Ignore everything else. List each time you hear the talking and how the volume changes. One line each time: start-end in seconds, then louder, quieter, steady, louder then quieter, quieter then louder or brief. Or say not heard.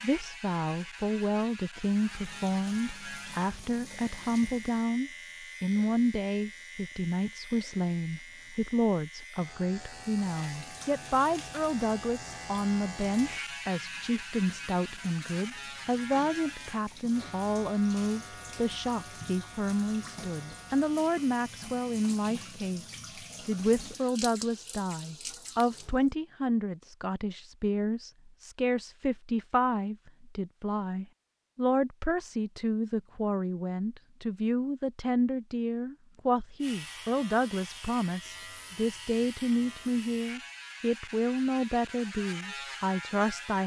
0.0-43.6 steady.